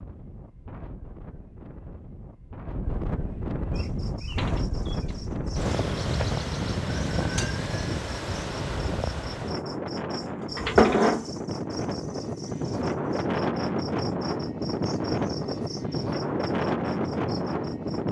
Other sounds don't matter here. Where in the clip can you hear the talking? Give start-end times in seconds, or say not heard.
not heard.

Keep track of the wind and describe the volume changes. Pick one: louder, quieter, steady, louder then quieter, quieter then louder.
louder.